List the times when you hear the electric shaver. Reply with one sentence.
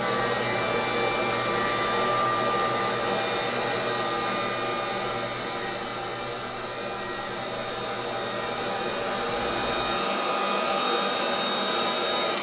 The electric shaver can be heard from 0.0 to 12.3 s.